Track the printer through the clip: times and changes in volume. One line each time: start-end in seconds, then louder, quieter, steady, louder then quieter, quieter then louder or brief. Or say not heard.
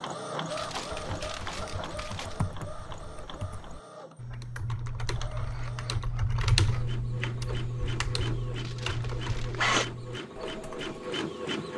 0.0-11.7 quieter then louder.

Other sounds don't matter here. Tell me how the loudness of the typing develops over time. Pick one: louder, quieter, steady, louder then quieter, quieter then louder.
louder then quieter.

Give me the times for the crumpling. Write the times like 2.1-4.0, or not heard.
0.5-2.4, 8.6-9.8.